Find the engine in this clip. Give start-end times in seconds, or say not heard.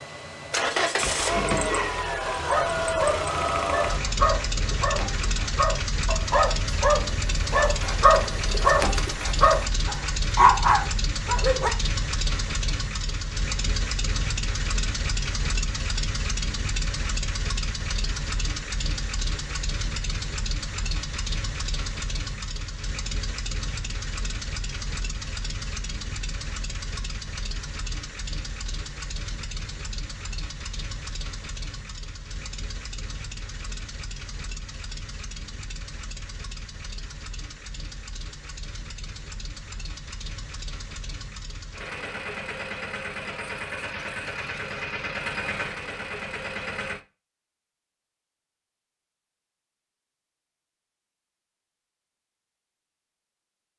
0.0-47.0.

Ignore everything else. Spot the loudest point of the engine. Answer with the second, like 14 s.
1 s.